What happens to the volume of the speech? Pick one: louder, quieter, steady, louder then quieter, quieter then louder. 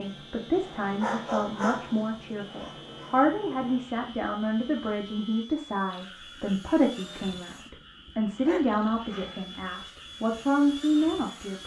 steady.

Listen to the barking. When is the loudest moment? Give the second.
1 s.